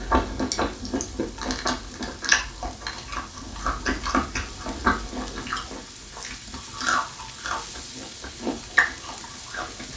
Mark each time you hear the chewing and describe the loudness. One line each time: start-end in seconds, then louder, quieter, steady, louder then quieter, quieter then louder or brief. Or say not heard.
0.0-9.9 steady.